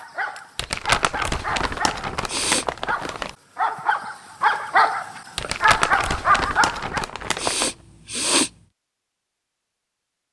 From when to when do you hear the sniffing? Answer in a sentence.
You can hear the sniffing from 1.9 to 2.9 s and from 7.0 to 8.5 s.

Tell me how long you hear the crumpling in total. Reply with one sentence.
You can hear the crumpling for 5 seconds altogether.